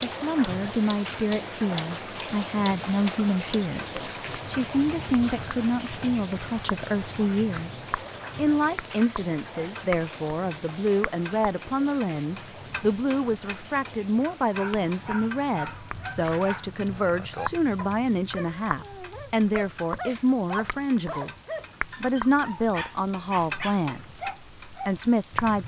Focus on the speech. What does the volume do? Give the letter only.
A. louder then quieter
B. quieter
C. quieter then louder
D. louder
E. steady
E.